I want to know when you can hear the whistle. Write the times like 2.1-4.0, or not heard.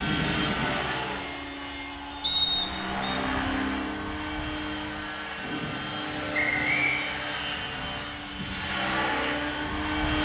2.2-3.1, 6.3-7.2.